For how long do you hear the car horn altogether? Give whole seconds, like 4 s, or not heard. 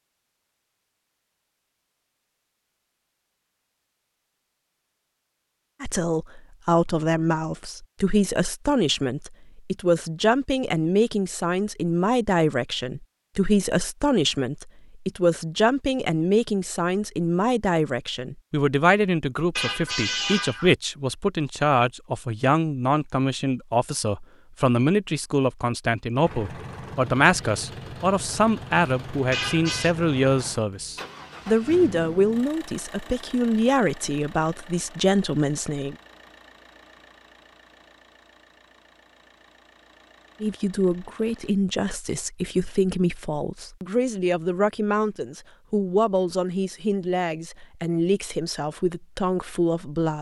2 s.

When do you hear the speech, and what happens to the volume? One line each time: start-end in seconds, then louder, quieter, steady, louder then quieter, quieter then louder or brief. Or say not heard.
5.8-36.0 steady
40.4-50.1 steady.